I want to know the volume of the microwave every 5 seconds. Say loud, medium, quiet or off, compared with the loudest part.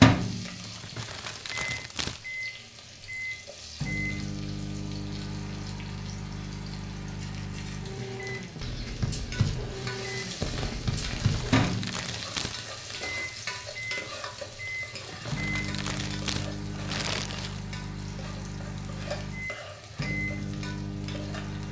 loud, medium, medium, medium, medium.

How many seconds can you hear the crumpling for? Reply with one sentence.
The crumpling can be heard for 6 seconds in total.